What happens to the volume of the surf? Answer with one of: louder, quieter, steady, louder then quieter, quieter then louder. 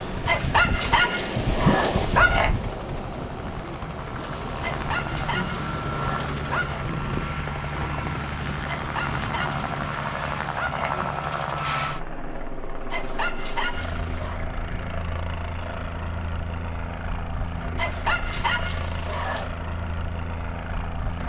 quieter.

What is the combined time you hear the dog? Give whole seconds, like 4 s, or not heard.
10 s.